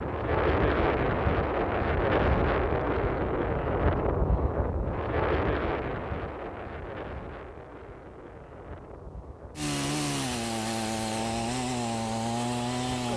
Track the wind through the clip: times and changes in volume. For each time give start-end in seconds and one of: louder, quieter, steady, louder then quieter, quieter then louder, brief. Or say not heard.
0.0-13.1 quieter.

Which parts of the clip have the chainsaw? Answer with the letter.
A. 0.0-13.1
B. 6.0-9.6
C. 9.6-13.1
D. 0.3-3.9
C.